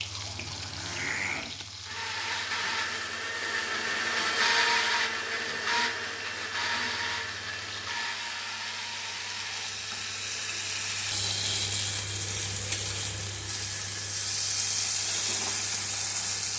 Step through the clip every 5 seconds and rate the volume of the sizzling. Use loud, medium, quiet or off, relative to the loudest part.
medium, medium, loud, loud.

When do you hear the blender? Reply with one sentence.
You can hear the blender from 0.0 to 16.5 s.